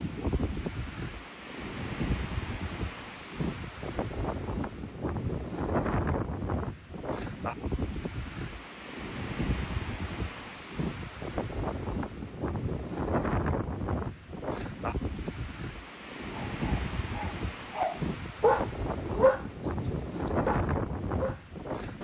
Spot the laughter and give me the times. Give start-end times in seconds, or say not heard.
not heard.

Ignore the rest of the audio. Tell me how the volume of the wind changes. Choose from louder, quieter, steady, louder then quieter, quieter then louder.
steady.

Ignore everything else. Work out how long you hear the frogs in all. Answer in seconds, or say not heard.
not heard.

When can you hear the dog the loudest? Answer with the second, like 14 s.
19 s.